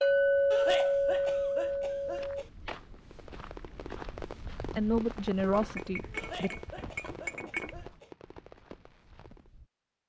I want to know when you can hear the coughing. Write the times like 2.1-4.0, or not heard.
0.5-2.5, 6.1-8.1.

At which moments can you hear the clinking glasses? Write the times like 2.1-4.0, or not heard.
0.0-2.5, 5.5-7.7.